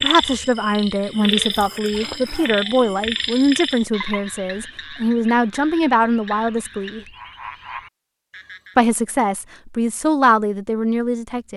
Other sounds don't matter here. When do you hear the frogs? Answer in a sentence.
The frogs can be heard from 0.0 to 8.8 s.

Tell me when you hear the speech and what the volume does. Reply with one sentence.
You can hear the speech from 0.0 to 7.0 s, at a steady volume; and briefly from 8.8 to 11.5 s.